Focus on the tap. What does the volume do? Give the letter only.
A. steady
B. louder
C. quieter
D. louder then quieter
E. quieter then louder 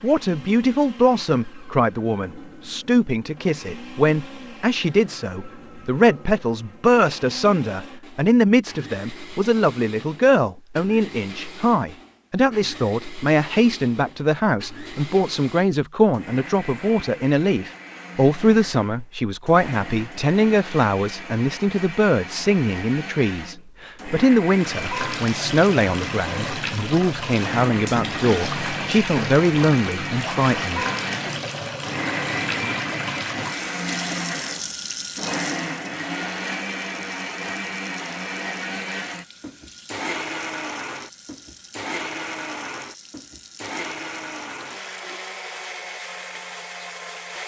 C.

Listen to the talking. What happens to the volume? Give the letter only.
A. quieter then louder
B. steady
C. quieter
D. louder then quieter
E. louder
B.